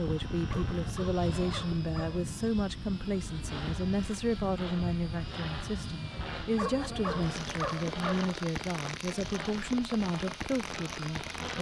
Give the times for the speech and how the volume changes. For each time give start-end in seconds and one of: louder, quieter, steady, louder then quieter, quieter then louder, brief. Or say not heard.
0.0-11.5 steady.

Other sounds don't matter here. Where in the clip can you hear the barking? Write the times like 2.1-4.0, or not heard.
0.5-2.2, 6.5-8.3.